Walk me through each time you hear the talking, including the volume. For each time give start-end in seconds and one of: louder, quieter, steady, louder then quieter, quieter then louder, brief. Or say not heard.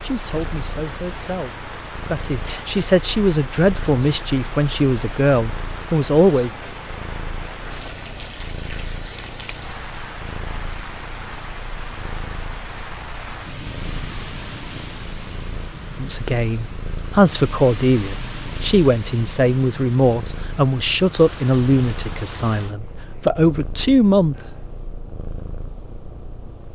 0.0-6.5 louder
15.8-24.4 steady.